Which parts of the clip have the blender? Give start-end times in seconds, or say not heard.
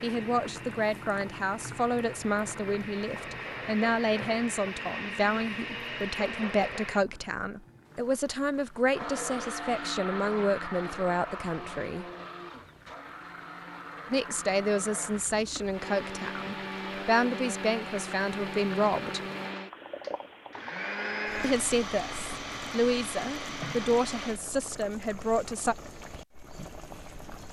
0.0-7.0, 8.9-24.4.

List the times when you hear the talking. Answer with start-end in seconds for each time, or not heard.
0.0-12.1, 14.1-19.2, 21.4-25.8.